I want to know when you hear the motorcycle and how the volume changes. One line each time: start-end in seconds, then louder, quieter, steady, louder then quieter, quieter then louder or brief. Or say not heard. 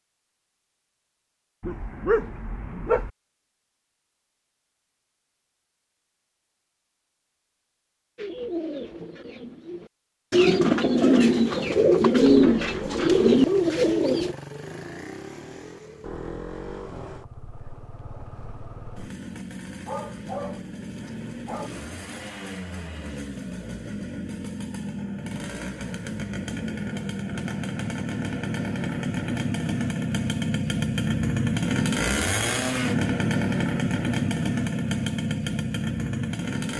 10.9-36.7 louder.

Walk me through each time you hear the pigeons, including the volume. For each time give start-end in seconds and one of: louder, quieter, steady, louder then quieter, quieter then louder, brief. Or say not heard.
8.2-14.3 louder.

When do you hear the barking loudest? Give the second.
2 s.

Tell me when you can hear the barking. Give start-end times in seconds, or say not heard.
1.6-3.1, 19.9-21.7.